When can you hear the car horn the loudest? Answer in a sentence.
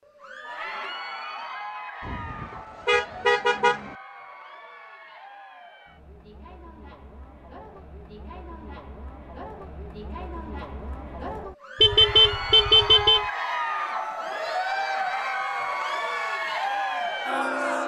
The loudest moment of the car horn is at 12 seconds.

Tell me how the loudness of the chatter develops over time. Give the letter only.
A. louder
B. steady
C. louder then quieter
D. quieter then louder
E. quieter
D.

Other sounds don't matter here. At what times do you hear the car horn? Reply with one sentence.
You can hear the car horn from 2.0 to 3.9 s and from 11.8 to 13.2 s.